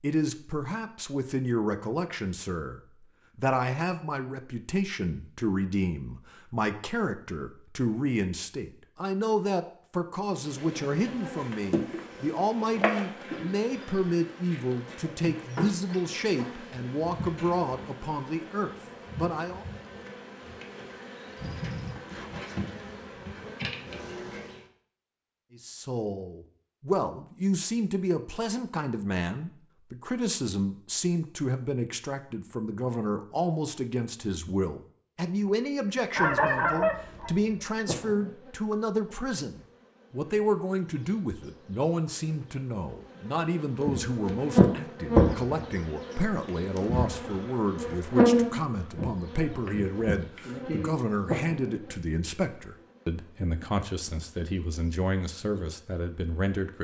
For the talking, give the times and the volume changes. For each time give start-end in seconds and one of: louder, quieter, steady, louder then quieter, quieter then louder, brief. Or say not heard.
0.0-19.6 steady
25.6-56.7 steady.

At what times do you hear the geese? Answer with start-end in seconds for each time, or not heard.
36.1-37.4.